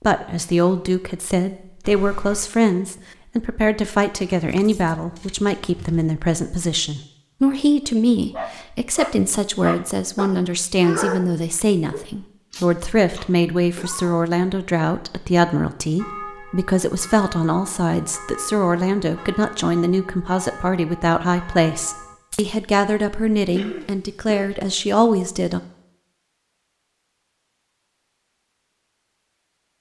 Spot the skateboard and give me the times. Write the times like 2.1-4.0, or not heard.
not heard.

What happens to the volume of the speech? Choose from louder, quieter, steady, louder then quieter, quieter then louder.
steady.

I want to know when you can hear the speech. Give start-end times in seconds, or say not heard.
0.0-25.6.